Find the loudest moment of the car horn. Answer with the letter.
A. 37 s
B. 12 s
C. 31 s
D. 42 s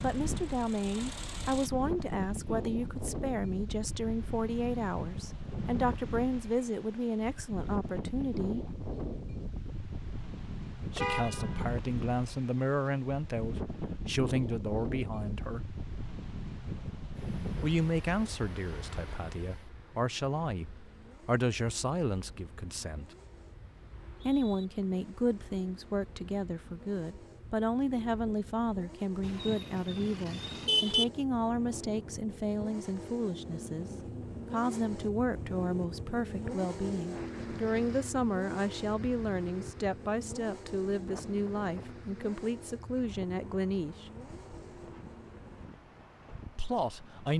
C.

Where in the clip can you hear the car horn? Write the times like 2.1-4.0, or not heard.
10.9-11.7, 29.2-31.1.